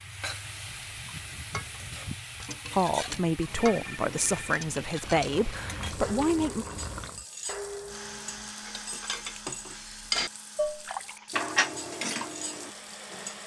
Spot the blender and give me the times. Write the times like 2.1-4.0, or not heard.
7.8-13.4.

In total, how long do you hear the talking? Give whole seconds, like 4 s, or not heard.
4 s.